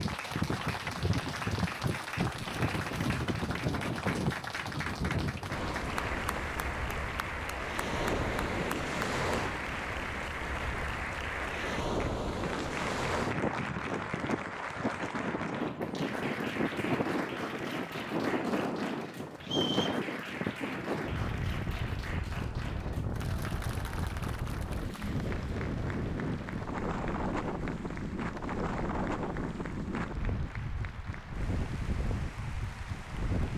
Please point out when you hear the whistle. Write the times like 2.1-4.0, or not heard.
19.4-20.0.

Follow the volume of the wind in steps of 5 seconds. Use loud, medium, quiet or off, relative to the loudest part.
loud, loud, loud, loud, loud, loud, medium.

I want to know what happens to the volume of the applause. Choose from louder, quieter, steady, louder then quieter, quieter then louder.
quieter.